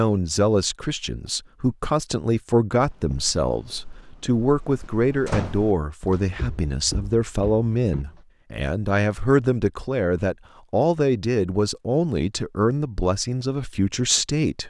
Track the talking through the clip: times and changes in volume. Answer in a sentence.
You can hear the talking from 0.0 to 14.6 s, at a steady volume.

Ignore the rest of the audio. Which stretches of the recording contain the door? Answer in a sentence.
The door can be heard from 5.2 to 5.8 s.